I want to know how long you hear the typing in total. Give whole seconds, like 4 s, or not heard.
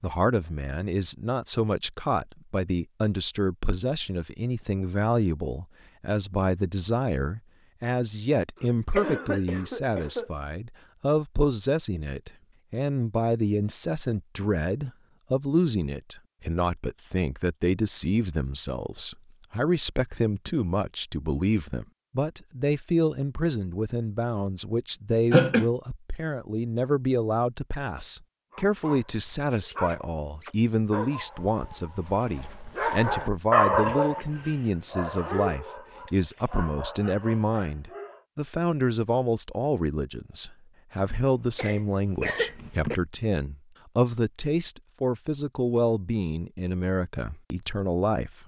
not heard.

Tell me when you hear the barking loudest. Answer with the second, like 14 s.
34 s.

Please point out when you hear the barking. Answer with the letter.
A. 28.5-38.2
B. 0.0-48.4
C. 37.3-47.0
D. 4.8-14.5
A.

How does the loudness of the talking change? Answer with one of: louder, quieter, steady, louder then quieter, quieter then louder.
steady.